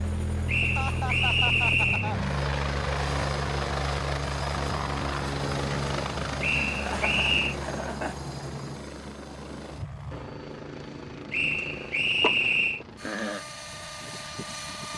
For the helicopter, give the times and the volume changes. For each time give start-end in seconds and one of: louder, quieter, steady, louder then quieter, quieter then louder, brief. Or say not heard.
0.0-14.9 quieter.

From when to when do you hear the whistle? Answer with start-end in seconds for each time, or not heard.
0.5-2.1, 6.4-7.5, 11.3-12.8.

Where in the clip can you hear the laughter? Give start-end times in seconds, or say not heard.
0.7-2.2, 6.8-8.2, 12.2-13.4.